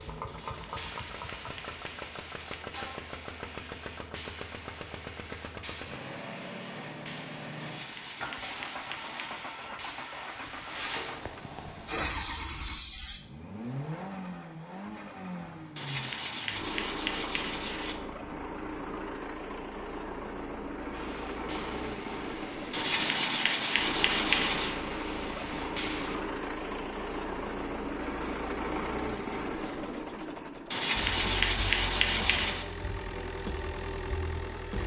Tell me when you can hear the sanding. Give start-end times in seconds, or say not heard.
0.2-3.0, 7.6-9.6, 15.8-18.0, 22.7-24.9, 30.7-32.6.